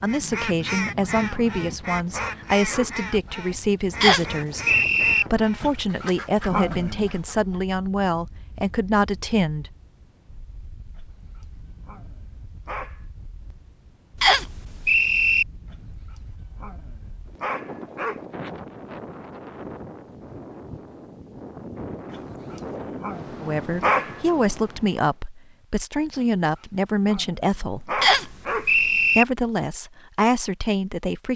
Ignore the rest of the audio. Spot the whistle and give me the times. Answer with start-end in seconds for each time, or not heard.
4.0-5.2, 14.2-15.4, 28.0-29.2.